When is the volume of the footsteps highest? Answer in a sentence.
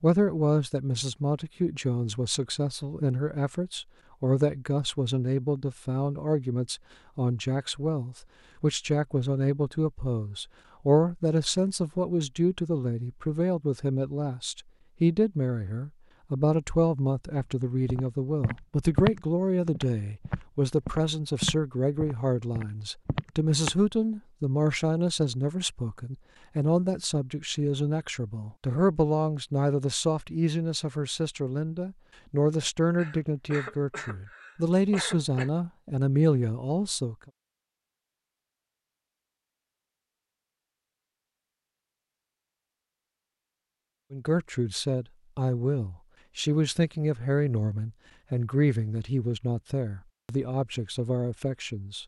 The volume of the footsteps peaks at 19 seconds.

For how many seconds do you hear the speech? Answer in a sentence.
You can hear the speech for 45 seconds altogether.